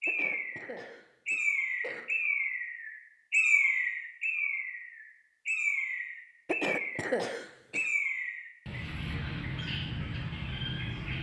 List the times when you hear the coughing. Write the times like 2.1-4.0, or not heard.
0.1-2.0, 6.5-7.8.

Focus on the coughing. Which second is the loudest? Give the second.
7 s.